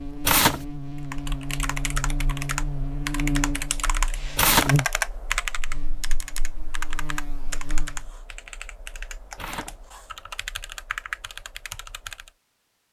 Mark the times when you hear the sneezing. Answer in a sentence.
The sneezing can't be heard in this clip.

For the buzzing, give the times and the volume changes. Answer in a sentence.
The buzzing can be heard from 0.0 to 8.1 s, getting louder then quieter.